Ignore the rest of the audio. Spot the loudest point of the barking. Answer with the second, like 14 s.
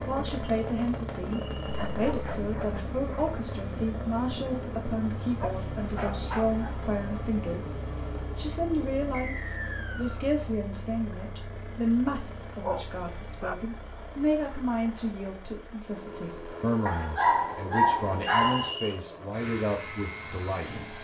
18 s.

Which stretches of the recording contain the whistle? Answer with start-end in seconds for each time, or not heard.
1.2-1.8, 9.1-10.2, 18.2-19.0.